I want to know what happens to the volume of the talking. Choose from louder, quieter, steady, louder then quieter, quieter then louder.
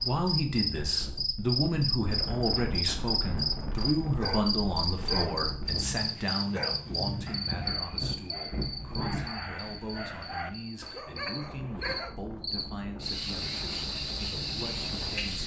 quieter.